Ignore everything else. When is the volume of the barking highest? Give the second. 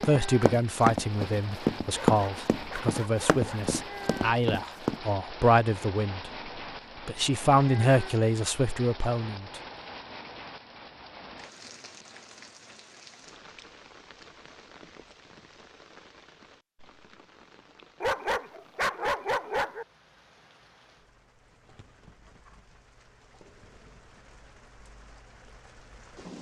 19 s.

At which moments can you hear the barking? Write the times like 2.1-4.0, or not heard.
1.9-3.8, 18.0-19.9.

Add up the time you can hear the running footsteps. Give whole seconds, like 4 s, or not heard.
5 s.